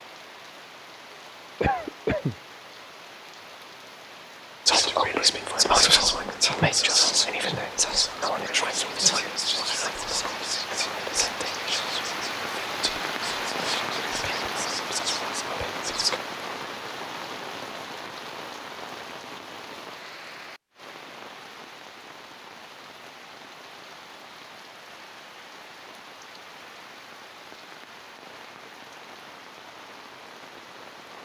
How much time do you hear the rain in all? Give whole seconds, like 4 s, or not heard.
31 s.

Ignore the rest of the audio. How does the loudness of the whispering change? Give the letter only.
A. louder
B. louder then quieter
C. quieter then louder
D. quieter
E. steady
D.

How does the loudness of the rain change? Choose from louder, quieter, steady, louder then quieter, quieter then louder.
louder then quieter.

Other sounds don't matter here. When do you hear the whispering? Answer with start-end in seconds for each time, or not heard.
4.7-16.2.